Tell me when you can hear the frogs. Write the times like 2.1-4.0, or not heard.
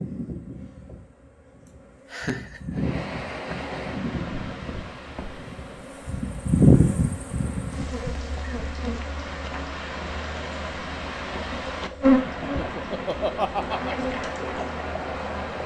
not heard.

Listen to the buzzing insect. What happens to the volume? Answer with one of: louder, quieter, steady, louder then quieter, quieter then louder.
louder then quieter.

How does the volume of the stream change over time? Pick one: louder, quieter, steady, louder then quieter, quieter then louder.
quieter then louder.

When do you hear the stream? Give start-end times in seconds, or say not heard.
2.7-15.6.